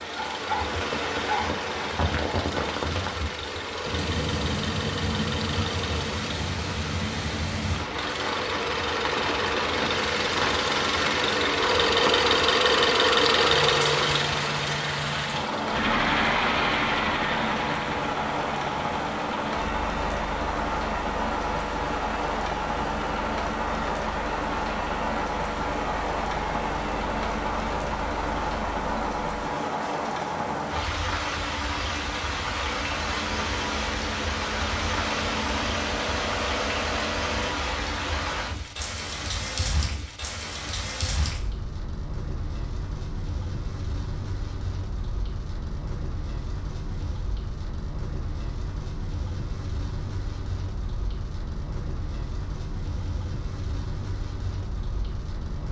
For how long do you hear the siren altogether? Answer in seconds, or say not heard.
not heard.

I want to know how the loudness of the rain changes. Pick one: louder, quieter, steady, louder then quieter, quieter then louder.
quieter.